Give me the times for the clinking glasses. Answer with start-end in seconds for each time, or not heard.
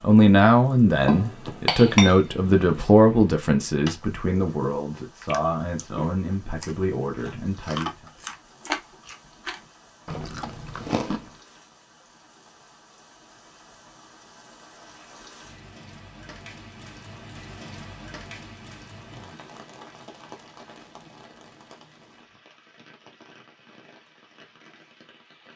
1.1-2.9.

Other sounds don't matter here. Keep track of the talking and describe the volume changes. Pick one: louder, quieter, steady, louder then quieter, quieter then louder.
quieter.